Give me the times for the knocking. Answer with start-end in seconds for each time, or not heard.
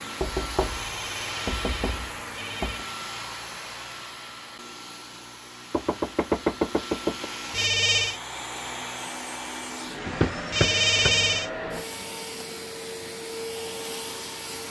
0.2-2.9, 5.7-7.3, 10.1-11.2.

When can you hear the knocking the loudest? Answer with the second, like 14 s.
6 s.